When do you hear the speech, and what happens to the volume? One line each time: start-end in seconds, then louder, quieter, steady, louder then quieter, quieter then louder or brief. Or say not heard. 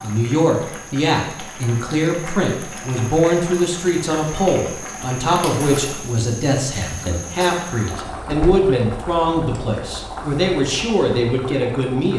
0.0-12.1 steady.